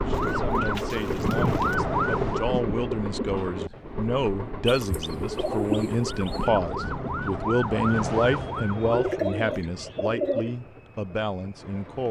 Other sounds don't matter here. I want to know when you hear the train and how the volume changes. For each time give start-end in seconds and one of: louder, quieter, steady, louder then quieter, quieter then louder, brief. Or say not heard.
0.0-12.0 quieter.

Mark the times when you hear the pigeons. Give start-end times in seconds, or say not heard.
0.1-1.8, 4.7-6.5, 8.9-10.6.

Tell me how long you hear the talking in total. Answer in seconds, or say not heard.
12 s.